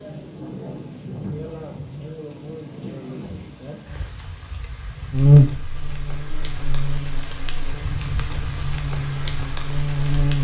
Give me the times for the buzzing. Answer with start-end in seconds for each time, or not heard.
5.1-10.3.